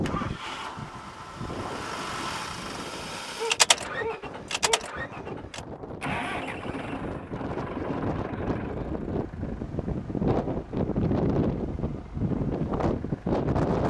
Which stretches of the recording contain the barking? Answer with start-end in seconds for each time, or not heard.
3.4-5.3.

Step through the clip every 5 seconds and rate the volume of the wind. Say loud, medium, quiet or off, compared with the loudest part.
quiet, medium, loud.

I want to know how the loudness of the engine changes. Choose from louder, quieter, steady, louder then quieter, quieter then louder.
louder then quieter.